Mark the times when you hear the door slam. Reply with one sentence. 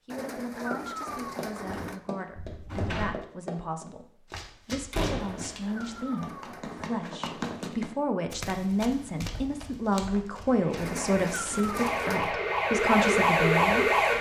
The door slam can be heard from 2.4 to 3.1 s, from 4.9 to 5.5 s and from 11.4 to 12.1 s.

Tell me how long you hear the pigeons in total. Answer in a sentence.
The pigeons can be heard for 5 seconds in total.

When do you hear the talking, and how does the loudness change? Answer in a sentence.
The talking can be heard from 0.1 to 13.9 s, getting louder.